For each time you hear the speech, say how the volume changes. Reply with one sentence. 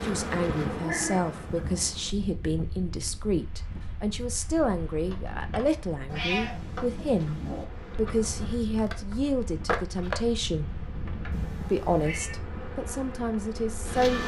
The speech can be heard from 0.0 to 10.8 s, at a steady volume; and briefly from 11.7 to 14.2 s.